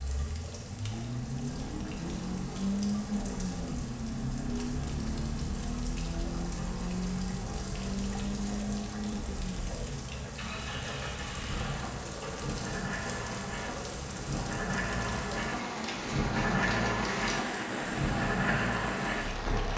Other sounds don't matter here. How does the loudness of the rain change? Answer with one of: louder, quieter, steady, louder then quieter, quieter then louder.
louder.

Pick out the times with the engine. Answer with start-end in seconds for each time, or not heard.
0.0-19.7.